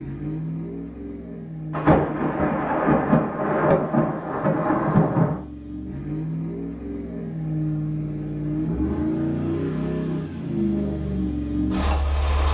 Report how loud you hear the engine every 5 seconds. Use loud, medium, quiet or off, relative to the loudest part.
medium, loud, loud.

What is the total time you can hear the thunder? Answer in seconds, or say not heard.
4 s.